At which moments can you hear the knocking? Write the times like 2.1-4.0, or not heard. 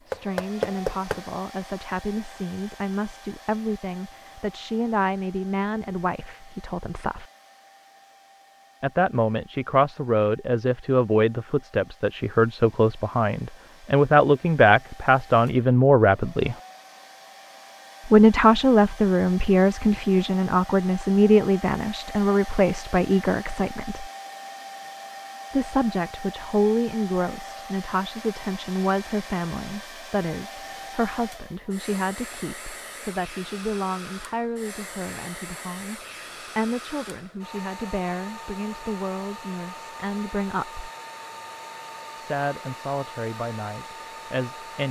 0.1-1.2.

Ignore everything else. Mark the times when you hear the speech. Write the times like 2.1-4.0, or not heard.
0.1-7.2, 8.8-16.6, 18.1-24.1, 25.5-40.9, 42.1-44.8.